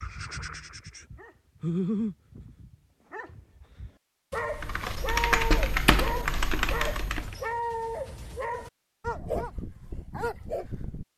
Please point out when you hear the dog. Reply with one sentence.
The dog can be heard from 0.0 to 11.1 s.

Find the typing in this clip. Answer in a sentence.
You can hear the typing from 4.5 to 7.3 s.